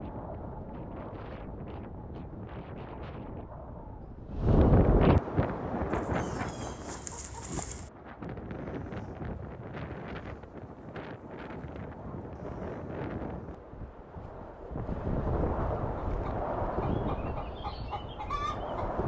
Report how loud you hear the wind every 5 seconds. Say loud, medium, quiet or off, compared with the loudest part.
loud, loud, medium, loud.